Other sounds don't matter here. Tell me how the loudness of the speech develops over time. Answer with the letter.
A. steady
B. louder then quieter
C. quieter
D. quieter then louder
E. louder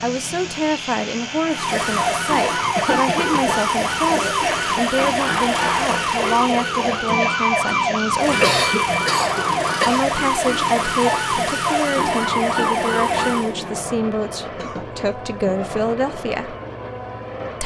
A.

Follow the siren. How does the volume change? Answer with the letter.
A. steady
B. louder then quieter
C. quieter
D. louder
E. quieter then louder
A.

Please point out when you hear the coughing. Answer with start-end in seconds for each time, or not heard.
2.8-3.5, 8.4-10.1, 14.6-15.6.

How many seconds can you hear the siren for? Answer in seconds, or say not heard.
12 s.